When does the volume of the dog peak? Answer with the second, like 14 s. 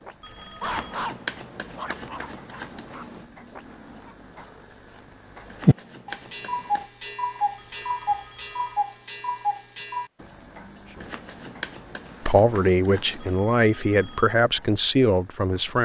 1 s.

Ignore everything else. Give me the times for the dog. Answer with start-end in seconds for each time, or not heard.
0.0-4.5.